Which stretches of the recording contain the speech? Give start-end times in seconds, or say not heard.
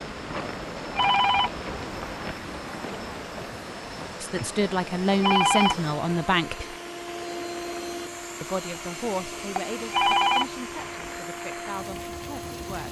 4.2-6.8, 8.4-12.8.